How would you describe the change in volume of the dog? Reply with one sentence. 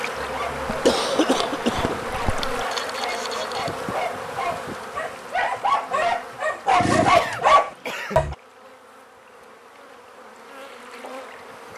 The loudness of the dog goes up.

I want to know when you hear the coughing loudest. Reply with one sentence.
The loudest moment of the coughing is at 1 second.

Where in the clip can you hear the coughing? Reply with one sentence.
The coughing can be heard from 0.7 to 2.6 s and from 7.1 to 8.2 s.